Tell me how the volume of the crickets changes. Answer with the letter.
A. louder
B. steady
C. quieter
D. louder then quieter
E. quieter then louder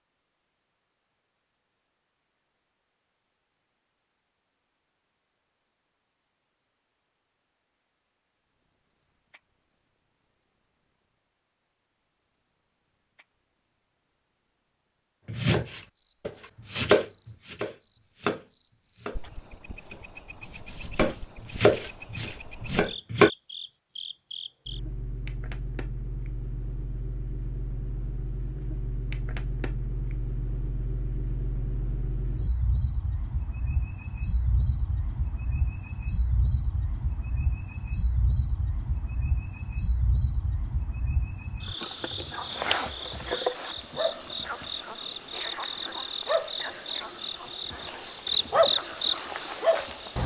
A.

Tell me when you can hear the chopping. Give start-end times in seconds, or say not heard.
15.2-19.2, 19.9-23.3.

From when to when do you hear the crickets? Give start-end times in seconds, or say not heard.
8.3-50.2.